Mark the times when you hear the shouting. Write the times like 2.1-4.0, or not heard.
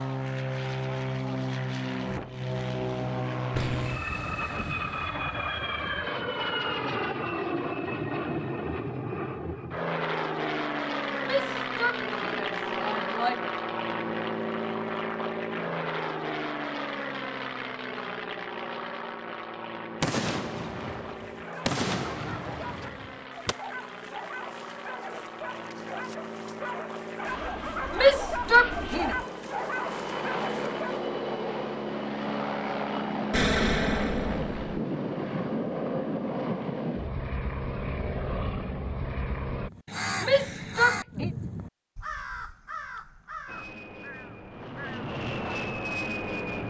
11.2-13.4, 27.9-29.1, 40.2-41.3.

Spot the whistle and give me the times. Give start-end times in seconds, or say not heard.
not heard.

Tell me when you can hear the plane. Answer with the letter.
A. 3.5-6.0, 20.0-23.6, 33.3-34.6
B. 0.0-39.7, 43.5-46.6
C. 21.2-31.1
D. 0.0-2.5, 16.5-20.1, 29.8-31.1
B.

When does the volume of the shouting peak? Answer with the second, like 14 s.
28 s.